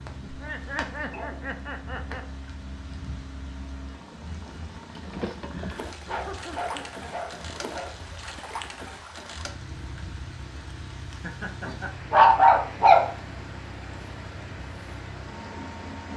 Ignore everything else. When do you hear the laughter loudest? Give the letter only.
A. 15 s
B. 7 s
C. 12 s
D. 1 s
D.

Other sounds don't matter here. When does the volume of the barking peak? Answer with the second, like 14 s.
12 s.